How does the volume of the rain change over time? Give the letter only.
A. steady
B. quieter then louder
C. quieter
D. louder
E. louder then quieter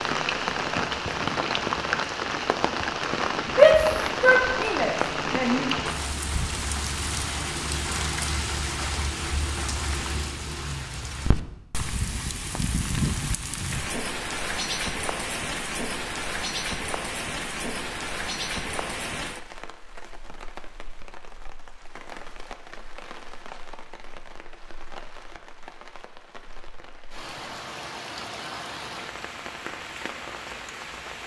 C.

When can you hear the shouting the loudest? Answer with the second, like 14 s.
4 s.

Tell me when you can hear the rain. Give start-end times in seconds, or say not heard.
0.0-31.2.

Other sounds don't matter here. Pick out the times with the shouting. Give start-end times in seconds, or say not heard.
3.5-5.7.